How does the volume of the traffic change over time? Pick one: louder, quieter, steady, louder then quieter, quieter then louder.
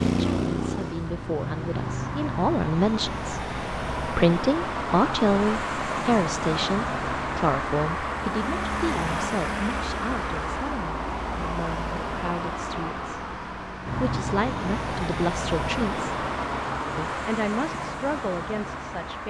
steady.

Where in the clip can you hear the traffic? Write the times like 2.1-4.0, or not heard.
0.0-19.2.